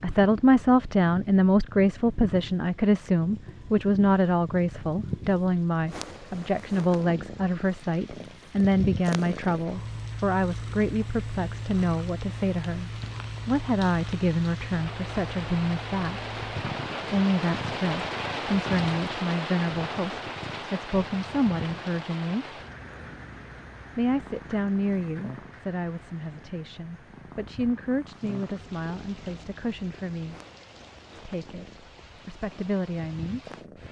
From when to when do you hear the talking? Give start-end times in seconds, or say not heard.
0.0-16.2, 17.1-22.4, 23.9-30.4, 31.1-33.8.